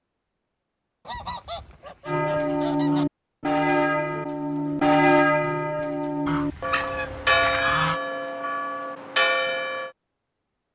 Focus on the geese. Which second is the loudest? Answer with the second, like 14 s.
8 s.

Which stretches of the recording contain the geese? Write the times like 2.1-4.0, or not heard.
1.1-3.0, 6.2-8.0.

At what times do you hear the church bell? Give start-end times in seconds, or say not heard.
2.0-9.9.